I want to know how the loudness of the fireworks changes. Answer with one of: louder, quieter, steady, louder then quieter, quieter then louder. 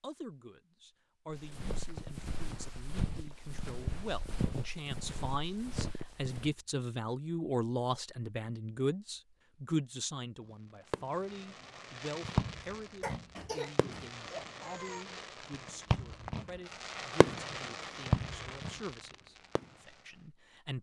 quieter then louder.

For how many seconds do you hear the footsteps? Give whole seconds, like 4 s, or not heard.
5 s.